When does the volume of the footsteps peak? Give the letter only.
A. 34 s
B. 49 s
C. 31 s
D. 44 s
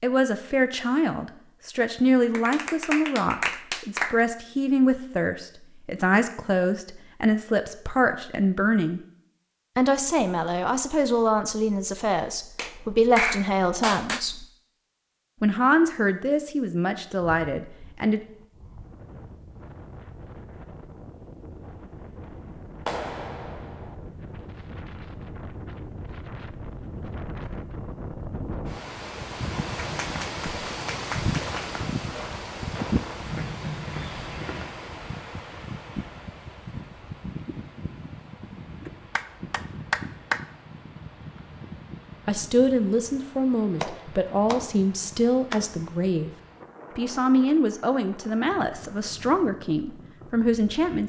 A.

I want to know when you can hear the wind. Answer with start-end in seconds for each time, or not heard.
17.1-51.0.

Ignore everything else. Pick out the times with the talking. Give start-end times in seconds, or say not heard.
0.0-9.0, 9.8-14.4, 15.4-18.2, 42.2-46.3, 47.0-51.0.